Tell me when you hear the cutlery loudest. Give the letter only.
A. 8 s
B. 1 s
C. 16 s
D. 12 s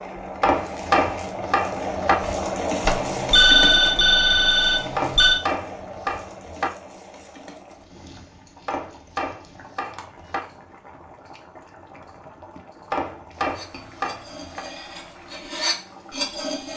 C.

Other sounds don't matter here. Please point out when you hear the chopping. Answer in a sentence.
The chopping can be heard from 0.4 to 2.1 s, from 5.0 to 6.7 s, from 8.7 to 10.4 s and from 12.9 to 14.7 s.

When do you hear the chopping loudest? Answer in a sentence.
The loudest moment of the chopping is at 1 second.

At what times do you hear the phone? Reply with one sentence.
You can hear the phone from 2.8 to 5.4 s.